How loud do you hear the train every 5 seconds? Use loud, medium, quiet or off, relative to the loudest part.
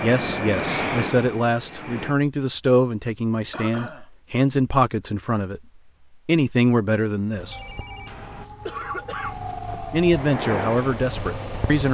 loud, off, loud.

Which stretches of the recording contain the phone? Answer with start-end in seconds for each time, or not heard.
7.5-8.5.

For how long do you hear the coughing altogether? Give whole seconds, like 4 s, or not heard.
2 s.